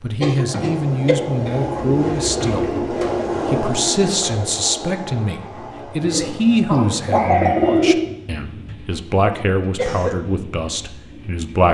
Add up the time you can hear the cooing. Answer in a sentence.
You can hear the cooing for 4 seconds altogether.